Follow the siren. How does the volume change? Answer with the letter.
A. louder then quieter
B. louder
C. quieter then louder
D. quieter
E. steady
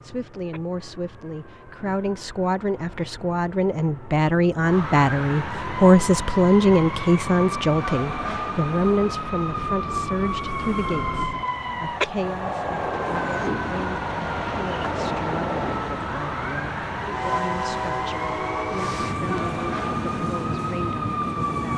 B.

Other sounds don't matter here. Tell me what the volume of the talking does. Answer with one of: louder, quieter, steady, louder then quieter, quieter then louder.
louder then quieter.